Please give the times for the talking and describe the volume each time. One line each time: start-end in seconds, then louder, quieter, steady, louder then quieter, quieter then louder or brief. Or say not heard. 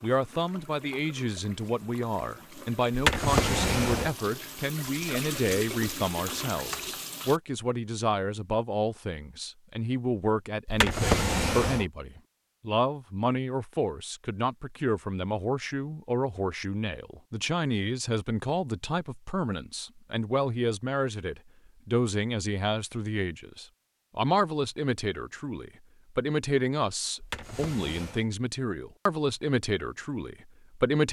0.0-31.0 steady.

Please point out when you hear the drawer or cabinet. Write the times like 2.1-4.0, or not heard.
2.9-4.1, 10.7-11.8, 27.2-28.2.